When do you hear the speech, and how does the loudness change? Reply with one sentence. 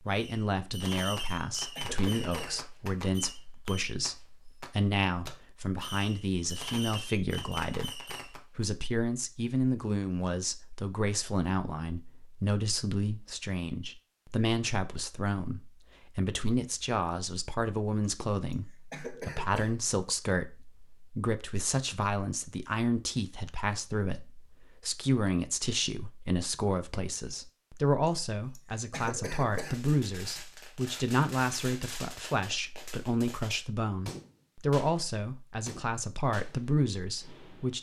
The speech can be heard from 0.0 to 37.7 s, at a steady volume.